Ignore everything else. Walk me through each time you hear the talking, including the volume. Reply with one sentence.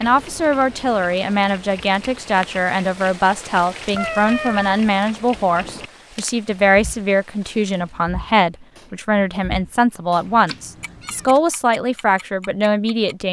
The talking can be heard from 0.0 to 13.2 s, at a steady volume.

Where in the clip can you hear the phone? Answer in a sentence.
You can't hear the phone here.